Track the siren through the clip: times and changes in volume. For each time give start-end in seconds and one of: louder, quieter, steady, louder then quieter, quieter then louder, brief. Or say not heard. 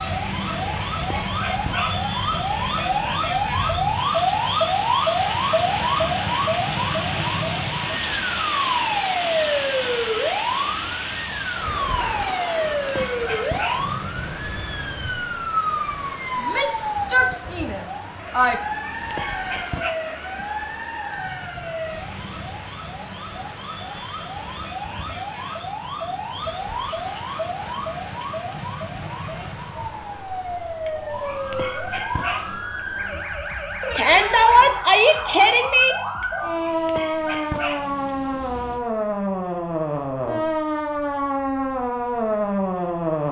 0.0-43.2 quieter then louder.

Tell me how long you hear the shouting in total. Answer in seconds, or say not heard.
5 s.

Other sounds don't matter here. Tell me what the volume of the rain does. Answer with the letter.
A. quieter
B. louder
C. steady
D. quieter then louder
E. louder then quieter
A.